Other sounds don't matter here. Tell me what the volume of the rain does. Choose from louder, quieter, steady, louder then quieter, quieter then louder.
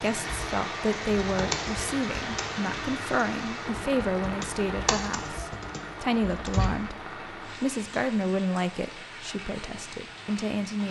quieter.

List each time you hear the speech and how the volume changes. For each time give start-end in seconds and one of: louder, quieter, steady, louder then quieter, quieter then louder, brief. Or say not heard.
0.0-10.8 steady.